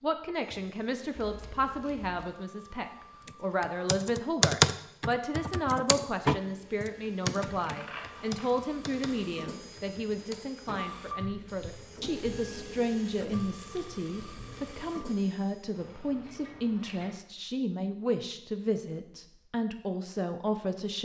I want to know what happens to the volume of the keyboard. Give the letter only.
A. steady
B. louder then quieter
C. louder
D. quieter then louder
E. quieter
E.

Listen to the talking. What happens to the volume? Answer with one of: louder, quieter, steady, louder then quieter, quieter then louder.
steady.